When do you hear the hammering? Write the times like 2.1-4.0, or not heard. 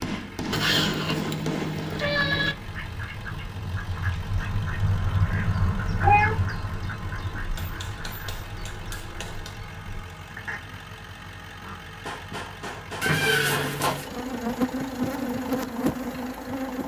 0.0-1.9, 7.5-9.6, 12.1-14.0.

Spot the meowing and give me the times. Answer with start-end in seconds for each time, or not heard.
0.5-2.5, 6.0-6.5, 13.0-14.1.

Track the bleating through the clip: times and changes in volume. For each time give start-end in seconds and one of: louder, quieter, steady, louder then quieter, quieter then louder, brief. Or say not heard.
not heard.